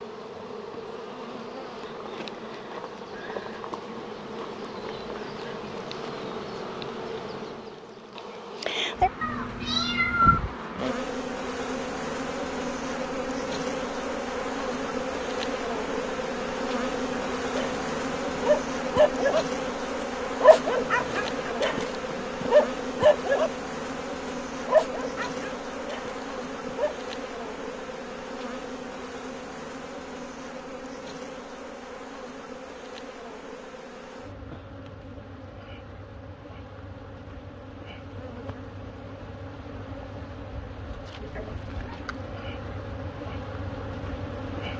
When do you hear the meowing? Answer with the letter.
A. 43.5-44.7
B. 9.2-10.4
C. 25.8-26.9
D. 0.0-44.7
B.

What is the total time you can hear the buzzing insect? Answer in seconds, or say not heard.
45 s.